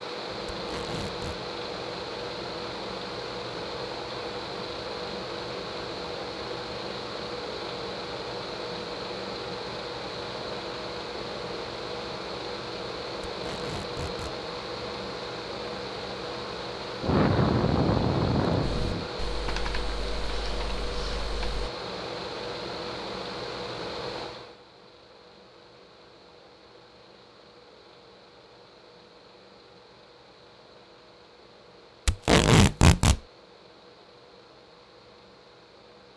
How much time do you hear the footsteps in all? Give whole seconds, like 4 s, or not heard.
not heard.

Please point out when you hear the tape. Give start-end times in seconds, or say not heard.
0.5-1.4, 13.2-14.3, 32.0-33.2.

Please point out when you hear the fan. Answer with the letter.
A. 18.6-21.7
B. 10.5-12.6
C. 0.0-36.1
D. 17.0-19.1
C.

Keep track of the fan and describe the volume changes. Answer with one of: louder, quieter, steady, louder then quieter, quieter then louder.
quieter.